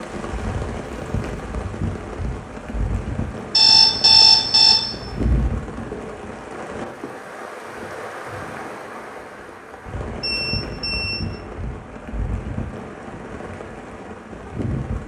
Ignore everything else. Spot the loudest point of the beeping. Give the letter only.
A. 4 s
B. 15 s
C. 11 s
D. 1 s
A.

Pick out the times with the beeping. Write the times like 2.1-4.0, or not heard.
3.5-5.5, 10.2-11.3.